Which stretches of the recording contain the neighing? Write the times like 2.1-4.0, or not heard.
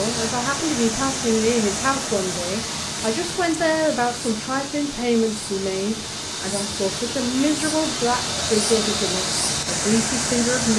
not heard.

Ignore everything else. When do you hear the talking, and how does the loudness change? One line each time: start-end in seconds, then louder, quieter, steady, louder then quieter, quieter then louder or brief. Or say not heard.
0.0-10.7 steady.